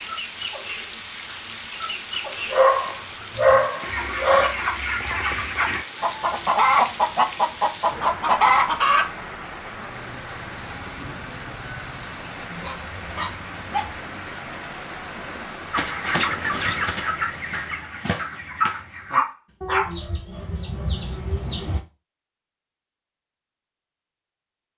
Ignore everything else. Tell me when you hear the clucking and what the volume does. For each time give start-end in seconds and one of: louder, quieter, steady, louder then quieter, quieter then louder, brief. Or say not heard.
0.0-9.2 louder
15.7-21.8 quieter.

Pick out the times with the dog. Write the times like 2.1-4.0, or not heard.
2.5-4.5, 12.6-13.9, 18.6-19.9.